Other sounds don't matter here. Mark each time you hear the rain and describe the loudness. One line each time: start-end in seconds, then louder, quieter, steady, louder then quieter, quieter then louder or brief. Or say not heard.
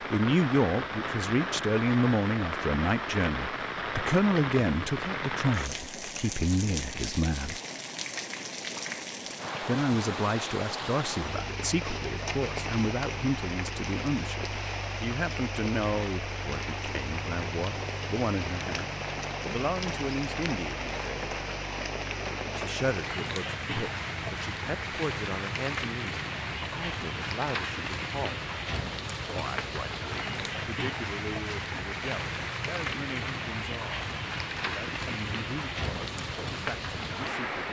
0.0-37.6 steady.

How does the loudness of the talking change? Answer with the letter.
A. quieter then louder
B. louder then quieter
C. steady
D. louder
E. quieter
E.